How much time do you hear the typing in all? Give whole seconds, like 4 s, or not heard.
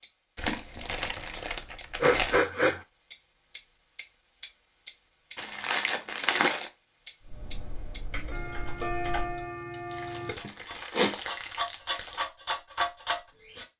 2 s.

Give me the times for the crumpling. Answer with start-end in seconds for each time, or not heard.
0.3-2.4, 5.3-6.7, 9.8-12.2.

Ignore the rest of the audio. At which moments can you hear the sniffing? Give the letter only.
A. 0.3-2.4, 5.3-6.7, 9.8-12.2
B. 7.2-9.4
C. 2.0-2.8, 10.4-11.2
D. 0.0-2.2
C.